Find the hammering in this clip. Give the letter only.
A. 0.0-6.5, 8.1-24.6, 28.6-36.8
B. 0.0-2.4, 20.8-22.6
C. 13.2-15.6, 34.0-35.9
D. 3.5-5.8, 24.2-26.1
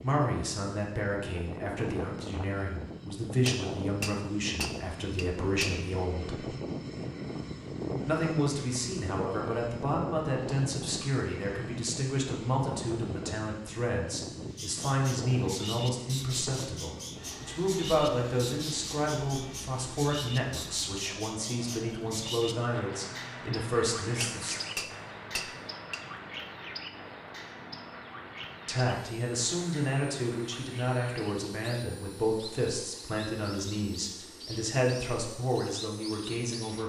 D.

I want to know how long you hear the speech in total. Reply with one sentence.
The speech can be heard for 31 seconds in total.